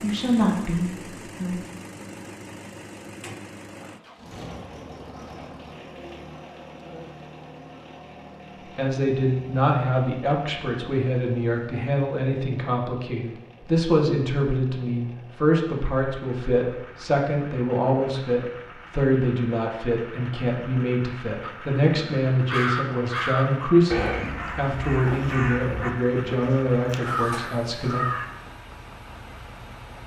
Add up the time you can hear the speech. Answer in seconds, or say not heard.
21 s.